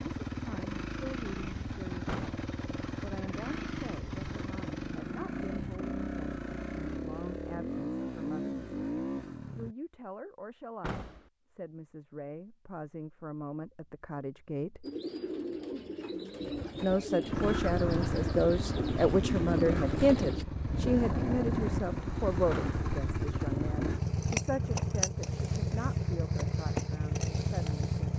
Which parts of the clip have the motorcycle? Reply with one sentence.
The motorcycle can be heard from 0.0 to 9.8 s and from 17.2 to 28.1 s.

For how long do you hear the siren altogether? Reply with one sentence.
The siren can't be heard in this clip.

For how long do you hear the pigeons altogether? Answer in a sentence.
The pigeons can be heard for 6 seconds in total.